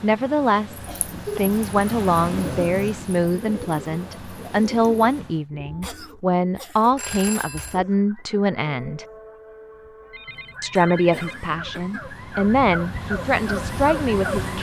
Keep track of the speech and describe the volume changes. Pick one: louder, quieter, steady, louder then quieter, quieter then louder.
steady.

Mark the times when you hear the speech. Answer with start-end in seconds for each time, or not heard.
0.0-9.1, 10.6-14.5.